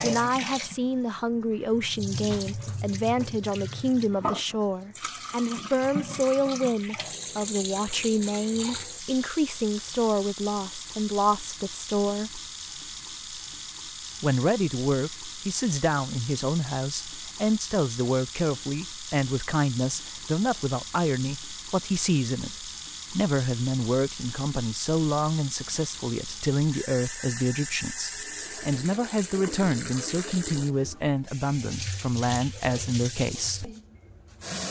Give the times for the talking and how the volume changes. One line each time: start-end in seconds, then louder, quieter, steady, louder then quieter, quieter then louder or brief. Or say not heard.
0.0-12.4 steady
14.2-33.8 steady.